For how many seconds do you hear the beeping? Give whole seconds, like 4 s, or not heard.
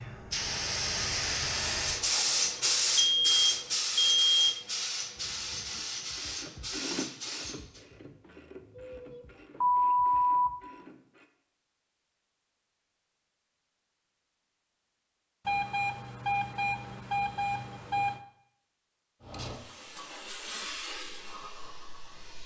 6 s.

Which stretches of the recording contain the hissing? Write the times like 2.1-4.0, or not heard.
0.0-7.8, 19.2-22.4.